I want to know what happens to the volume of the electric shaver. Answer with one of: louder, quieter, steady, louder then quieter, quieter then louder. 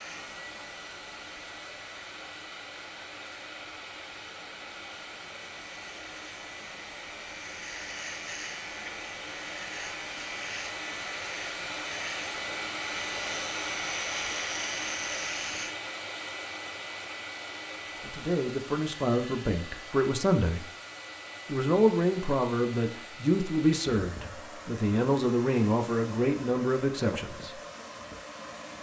louder.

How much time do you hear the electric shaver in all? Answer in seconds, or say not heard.
16 s.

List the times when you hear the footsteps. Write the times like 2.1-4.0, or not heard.
not heard.